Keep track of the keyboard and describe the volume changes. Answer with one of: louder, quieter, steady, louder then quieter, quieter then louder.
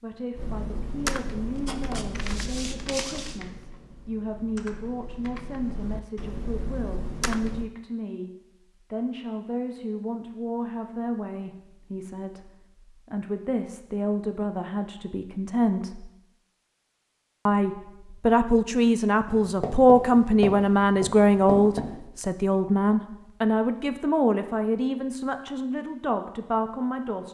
quieter then louder.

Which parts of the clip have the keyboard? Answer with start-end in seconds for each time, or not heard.
0.3-7.7.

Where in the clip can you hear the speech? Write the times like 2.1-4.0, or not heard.
0.0-8.3, 8.9-16.1, 17.4-27.2.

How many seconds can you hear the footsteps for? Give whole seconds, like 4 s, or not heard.
not heard.